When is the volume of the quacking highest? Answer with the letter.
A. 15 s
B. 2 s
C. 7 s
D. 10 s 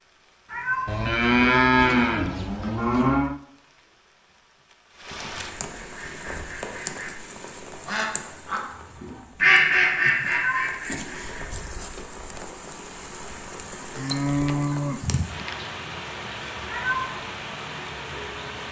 D.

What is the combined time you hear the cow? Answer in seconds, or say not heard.
4 s.